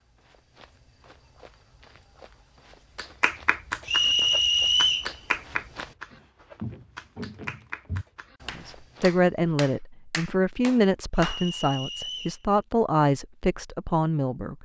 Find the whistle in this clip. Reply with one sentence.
You can hear the whistle from 3.9 to 5.1 s and from 11.2 to 12.4 s.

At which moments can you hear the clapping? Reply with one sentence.
You can hear the clapping from 3.0 to 11.4 s.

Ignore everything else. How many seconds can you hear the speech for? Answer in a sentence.
The speech can be heard for 6 seconds in total.